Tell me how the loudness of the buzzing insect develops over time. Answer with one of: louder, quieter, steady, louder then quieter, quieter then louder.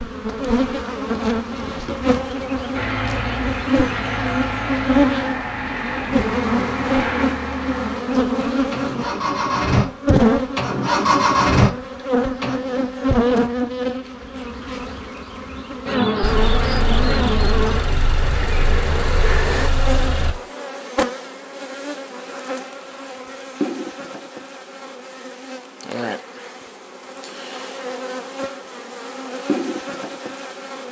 quieter.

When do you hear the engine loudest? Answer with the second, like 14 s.
11 s.